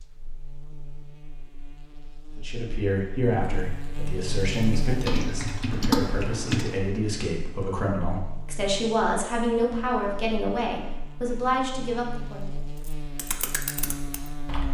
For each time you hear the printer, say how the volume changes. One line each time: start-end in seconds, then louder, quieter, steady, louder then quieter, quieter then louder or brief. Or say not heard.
not heard.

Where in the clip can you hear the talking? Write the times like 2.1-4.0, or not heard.
2.4-12.6.